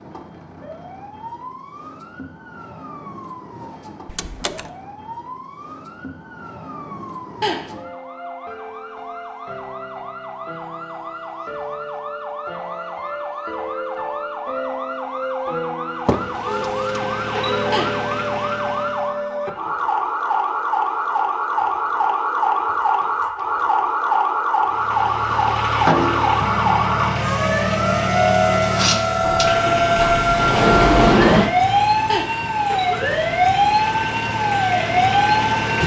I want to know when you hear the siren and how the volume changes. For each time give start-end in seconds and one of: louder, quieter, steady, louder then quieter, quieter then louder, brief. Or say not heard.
0.0-35.8 louder.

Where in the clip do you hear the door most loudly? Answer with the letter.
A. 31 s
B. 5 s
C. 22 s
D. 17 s
A.